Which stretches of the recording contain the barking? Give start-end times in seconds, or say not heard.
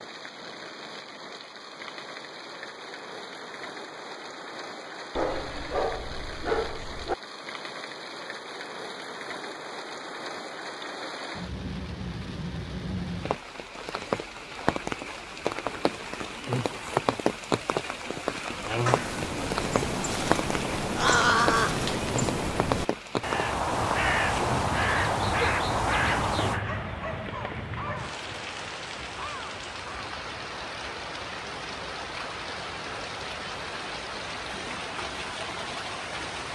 5.2-7.2, 26.6-28.1.